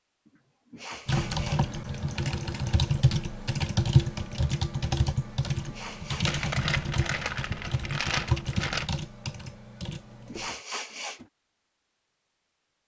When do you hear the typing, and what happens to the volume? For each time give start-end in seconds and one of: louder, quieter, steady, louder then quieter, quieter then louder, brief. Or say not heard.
1.1-10.5 quieter.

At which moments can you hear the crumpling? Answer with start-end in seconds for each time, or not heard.
6.2-8.9.